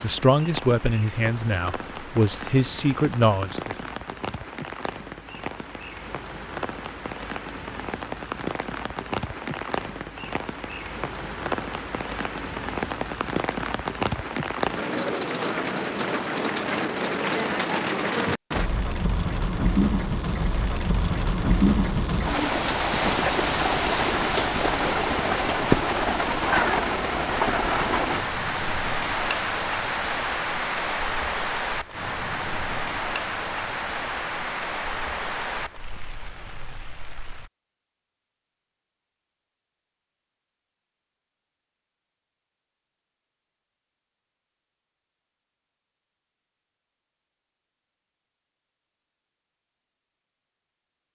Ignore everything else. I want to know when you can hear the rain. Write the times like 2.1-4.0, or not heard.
0.0-37.5.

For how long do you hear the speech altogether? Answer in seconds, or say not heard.
4 s.